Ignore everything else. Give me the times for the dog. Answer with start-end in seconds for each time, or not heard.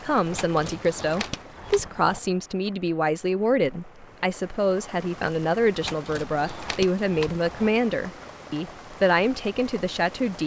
not heard.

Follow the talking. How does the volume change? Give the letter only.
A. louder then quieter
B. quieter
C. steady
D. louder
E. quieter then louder
C.